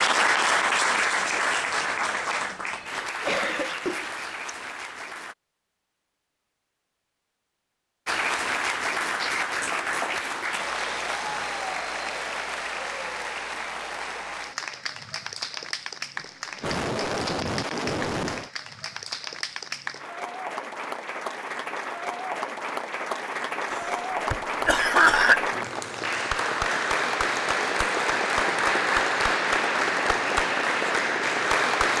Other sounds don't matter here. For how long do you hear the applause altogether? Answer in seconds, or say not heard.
29 s.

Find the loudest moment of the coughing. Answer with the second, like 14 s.
25 s.